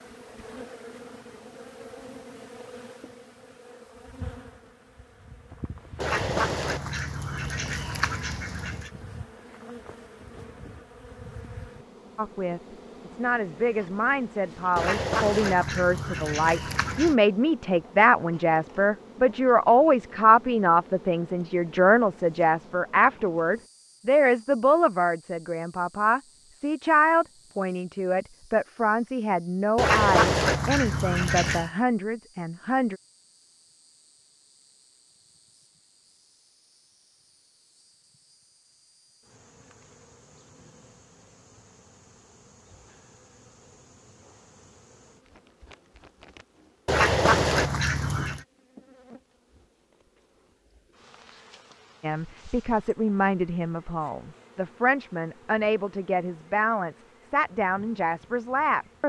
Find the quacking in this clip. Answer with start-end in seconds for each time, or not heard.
6.0-8.9, 14.8-17.1, 29.8-31.7, 46.9-48.4.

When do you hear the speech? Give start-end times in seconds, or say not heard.
12.2-33.0, 52.0-59.0.